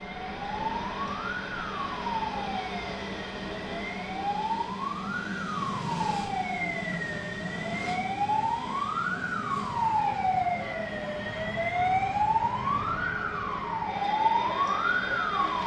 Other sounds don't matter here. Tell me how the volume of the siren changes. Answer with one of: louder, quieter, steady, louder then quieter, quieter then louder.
louder.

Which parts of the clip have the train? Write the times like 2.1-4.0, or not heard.
0.0-15.6.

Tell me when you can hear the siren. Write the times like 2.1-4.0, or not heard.
0.0-15.6.